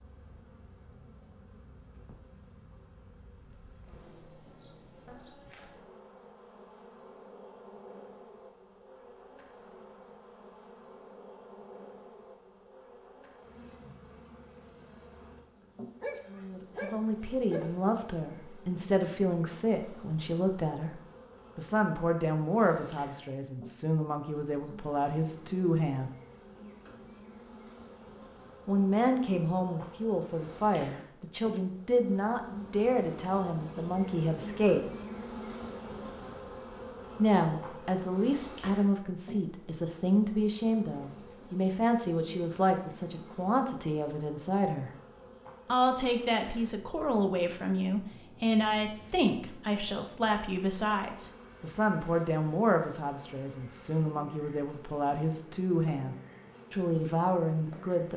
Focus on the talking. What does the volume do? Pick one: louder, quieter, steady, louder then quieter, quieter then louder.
steady.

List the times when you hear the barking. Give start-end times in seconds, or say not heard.
16.0-17.9.